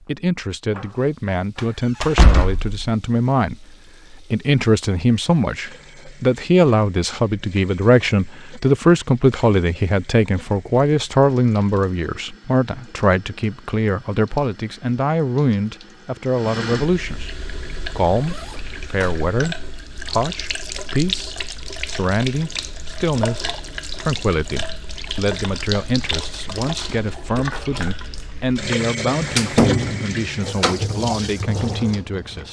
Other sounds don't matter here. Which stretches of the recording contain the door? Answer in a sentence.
The door can be heard from 1.6 to 2.8 s, from 18.9 to 19.4 s and from 29.2 to 30.9 s.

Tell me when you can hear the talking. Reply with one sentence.
You can hear the talking from 0.1 to 17.4 s and from 17.9 to 32.4 s.